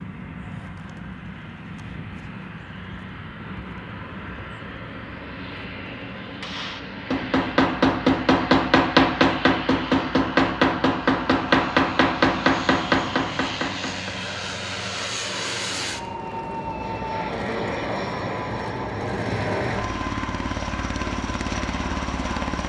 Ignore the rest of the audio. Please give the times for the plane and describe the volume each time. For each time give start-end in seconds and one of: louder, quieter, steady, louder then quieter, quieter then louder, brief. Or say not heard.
0.0-22.6 louder.